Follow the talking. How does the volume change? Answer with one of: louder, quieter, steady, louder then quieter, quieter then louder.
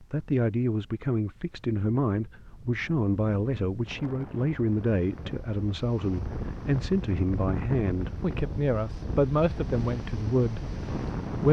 steady.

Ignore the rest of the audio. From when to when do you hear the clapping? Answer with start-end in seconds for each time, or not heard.
not heard.